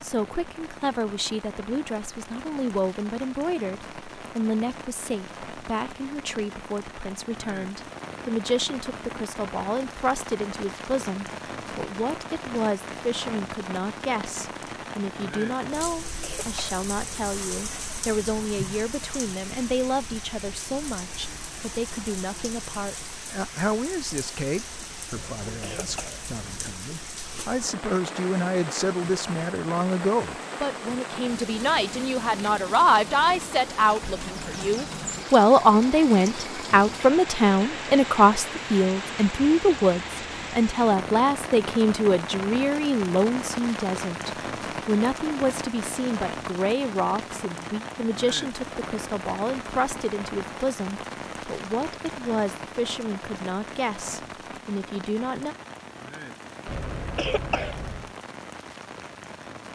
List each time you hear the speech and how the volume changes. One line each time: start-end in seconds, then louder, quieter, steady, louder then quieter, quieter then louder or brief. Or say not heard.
0.0-55.5 louder then quieter.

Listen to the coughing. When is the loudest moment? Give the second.
57 s.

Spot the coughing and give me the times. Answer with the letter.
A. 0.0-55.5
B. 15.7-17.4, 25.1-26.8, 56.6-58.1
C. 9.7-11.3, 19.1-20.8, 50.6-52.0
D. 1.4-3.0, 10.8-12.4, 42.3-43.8
B.